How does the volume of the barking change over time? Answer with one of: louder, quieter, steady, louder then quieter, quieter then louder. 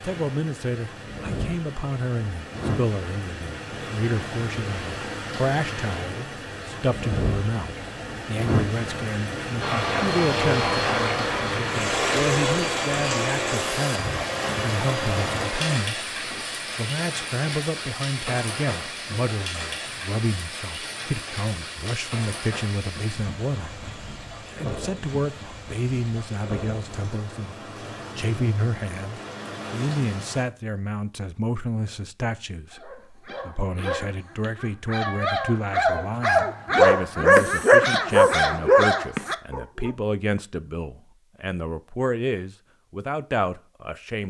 louder.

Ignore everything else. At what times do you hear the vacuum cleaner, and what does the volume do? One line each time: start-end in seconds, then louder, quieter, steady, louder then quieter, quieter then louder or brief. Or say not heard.
9.6-15.8 quieter.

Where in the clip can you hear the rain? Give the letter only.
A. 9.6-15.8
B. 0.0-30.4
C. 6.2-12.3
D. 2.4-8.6
B.